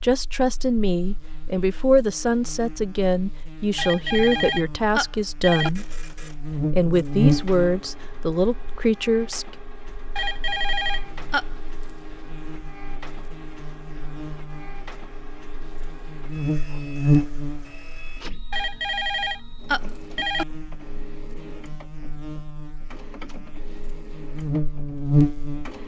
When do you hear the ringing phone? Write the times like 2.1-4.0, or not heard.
3.8-5.7, 10.2-11.6, 18.5-20.4.